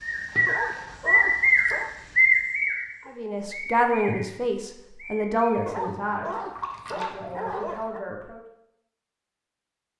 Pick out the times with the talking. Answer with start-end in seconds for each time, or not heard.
3.0-8.4.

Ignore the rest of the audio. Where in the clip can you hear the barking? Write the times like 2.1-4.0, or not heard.
0.5-1.9, 5.7-8.1.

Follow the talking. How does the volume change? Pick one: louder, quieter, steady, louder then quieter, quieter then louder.
quieter.